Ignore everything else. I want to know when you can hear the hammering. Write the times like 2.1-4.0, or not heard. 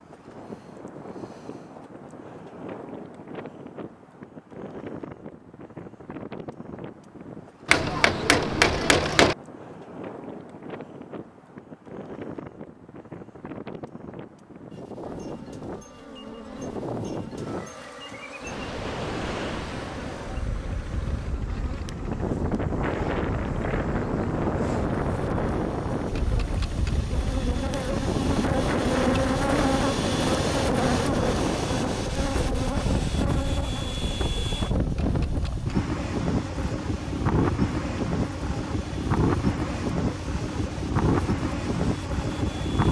7.7-9.3.